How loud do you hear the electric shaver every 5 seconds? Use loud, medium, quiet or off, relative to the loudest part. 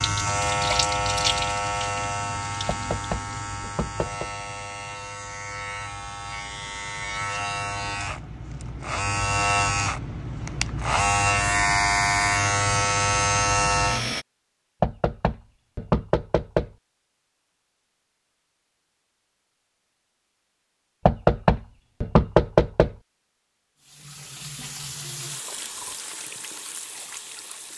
medium, medium, loud, off, off, off.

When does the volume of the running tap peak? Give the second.
1 s.